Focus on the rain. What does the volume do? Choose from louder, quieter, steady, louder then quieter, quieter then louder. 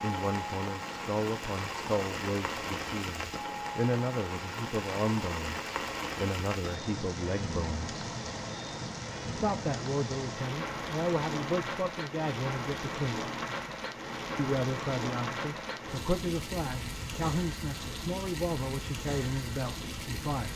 steady.